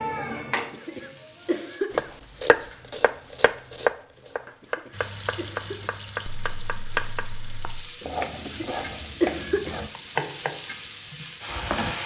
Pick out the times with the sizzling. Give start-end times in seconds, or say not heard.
0.0-1.8, 4.9-12.0.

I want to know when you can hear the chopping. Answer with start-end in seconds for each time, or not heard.
1.9-11.9.